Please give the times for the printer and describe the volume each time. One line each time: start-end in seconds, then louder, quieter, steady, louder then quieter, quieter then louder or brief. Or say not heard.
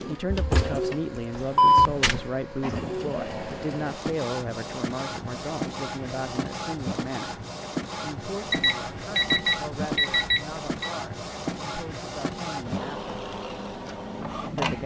0.0-14.8 steady.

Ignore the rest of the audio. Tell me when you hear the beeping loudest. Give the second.
2 s.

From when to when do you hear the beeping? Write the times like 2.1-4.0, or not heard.
0.3-2.3, 8.5-10.9.